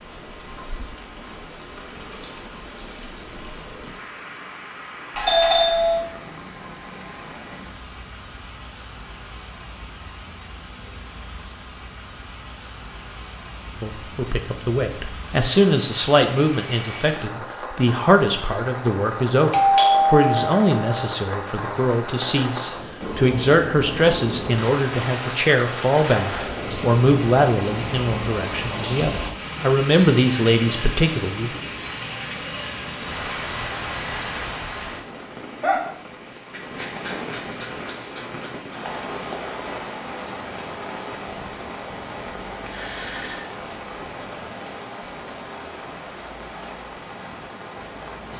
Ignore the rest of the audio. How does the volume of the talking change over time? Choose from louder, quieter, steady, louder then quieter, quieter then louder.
steady.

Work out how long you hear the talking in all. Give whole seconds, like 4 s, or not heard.
18 s.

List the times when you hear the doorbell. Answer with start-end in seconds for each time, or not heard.
5.2-6.0, 19.5-21.1, 42.7-43.5.